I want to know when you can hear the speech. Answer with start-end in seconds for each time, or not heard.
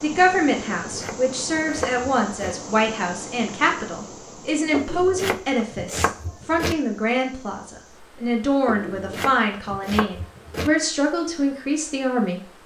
0.0-12.6.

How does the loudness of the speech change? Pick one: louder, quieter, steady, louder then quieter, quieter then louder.
steady.